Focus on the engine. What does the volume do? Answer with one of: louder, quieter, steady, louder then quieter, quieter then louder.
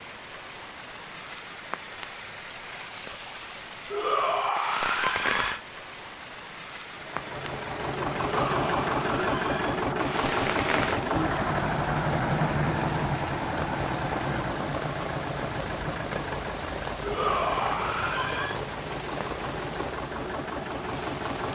quieter.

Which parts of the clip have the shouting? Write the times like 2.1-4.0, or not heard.
3.9-5.6, 8.2-9.8, 17.0-18.6.